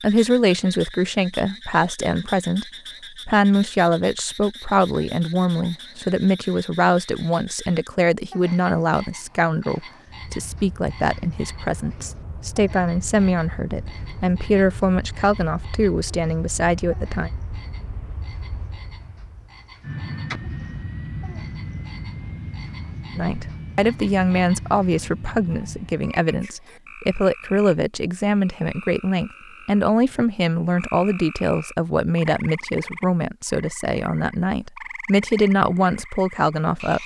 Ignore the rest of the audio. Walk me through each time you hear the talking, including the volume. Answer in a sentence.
You can hear the talking from 0.0 to 17.3 s, at a steady volume; and from 23.1 to 37.0 s, at a steady volume.